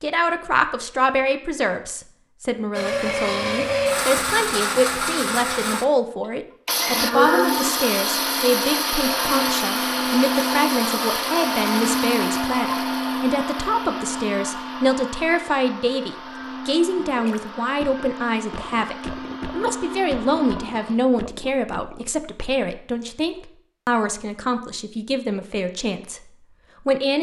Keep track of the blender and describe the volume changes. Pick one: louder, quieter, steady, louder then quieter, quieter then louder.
quieter.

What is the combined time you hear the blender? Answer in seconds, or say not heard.
18 s.